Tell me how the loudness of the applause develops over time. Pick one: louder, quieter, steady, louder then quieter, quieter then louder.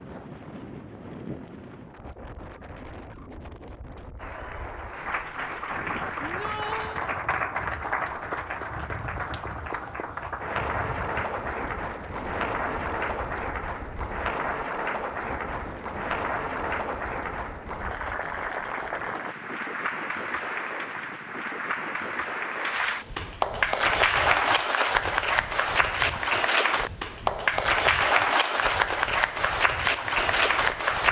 louder.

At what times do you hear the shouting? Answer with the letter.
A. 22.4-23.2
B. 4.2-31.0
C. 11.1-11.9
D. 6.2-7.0
D.